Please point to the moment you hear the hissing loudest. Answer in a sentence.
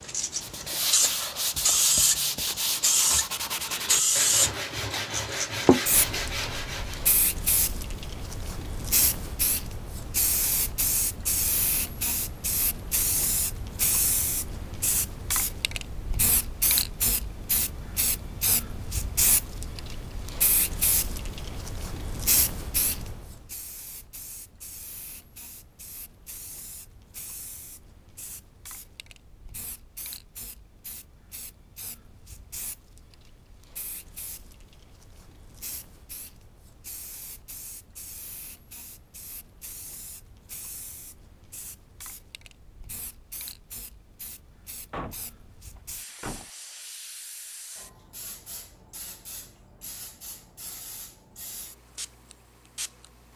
The loudest moment of the hissing is at 4 seconds.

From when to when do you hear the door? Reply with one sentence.
You can hear the door from 44.9 to 46.5 s.